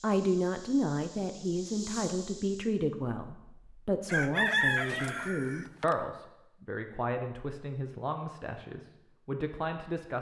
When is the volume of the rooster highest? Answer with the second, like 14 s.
5 s.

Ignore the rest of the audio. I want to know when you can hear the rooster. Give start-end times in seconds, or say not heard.
4.0-6.0.